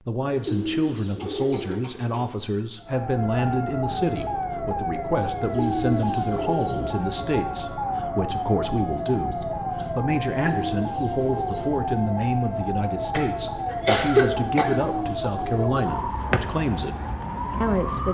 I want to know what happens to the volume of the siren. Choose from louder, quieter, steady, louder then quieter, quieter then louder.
steady.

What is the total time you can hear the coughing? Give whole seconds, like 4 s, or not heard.
4 s.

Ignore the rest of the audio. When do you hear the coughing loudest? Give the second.
14 s.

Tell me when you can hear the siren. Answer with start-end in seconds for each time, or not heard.
2.8-18.0.